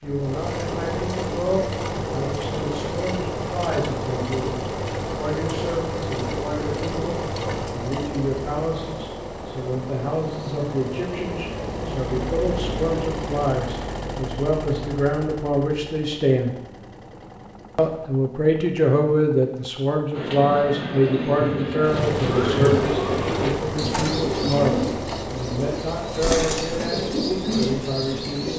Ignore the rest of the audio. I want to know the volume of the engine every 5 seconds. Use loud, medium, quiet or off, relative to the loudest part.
loud, loud, loud, quiet, loud, medium.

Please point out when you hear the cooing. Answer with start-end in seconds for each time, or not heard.
20.1-28.5.